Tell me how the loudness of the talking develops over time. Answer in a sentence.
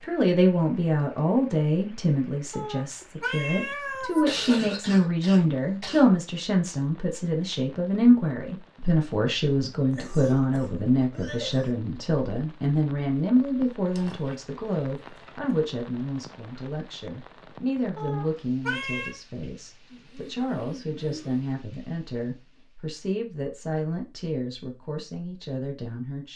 The volume of the talking goes down.